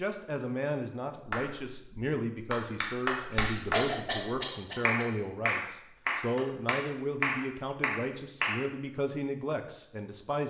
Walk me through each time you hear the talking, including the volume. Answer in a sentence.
The talking can be heard from 0.0 to 10.4 s, at a steady volume.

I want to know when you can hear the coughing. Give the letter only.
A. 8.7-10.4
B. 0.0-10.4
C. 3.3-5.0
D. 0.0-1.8
C.